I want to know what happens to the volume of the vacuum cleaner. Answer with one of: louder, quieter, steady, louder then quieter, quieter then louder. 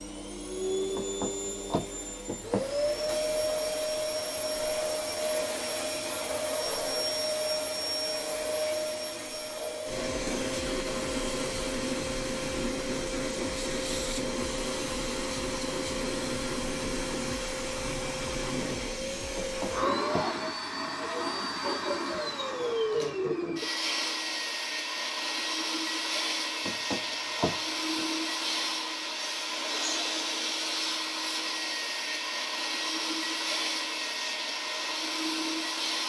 steady.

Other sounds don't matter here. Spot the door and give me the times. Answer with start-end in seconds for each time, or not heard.
0.9-2.6, 19.4-20.3, 26.6-28.1.